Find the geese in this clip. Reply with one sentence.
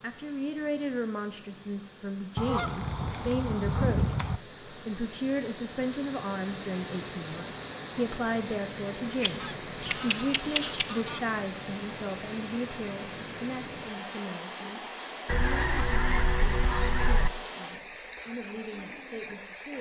You can hear the geese from 2.4 to 4.4 s, from 9.2 to 11.2 s and from 15.2 to 17.3 s.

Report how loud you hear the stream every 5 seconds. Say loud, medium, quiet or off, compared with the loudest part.
medium, loud, loud, loud.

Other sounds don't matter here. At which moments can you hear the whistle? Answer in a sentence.
The whistle can't be heard in this clip.